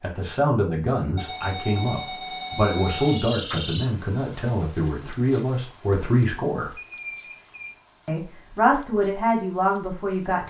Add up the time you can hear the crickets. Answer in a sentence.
You can hear the crickets for 8 seconds altogether.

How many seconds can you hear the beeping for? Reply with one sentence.
The beeping can be heard for 3 seconds in total.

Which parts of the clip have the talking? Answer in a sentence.
You can hear the talking from 0.0 to 6.7 s and from 8.1 to 10.4 s.